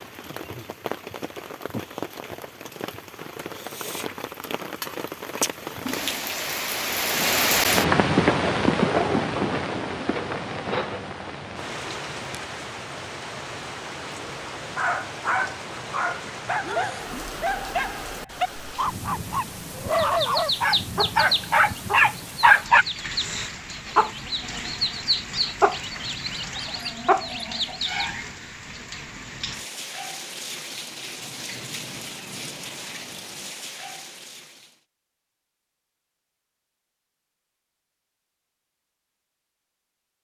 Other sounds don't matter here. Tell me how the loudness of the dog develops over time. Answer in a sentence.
The loudness of the dog goes up.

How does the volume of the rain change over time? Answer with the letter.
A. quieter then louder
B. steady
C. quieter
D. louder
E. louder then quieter
E.